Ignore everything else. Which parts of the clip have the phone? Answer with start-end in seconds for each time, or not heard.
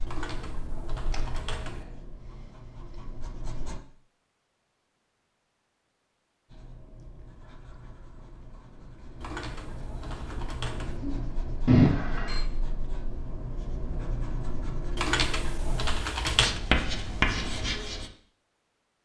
11.7-12.4.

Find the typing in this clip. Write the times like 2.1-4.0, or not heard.
0.1-1.9, 9.2-11.0, 14.9-16.6.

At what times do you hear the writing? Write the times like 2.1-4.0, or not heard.
0.0-3.8, 6.5-18.1.